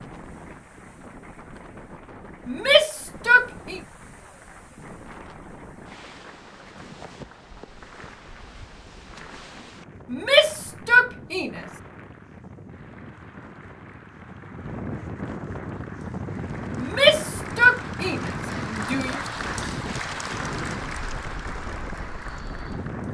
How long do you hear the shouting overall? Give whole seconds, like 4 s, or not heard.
5 s.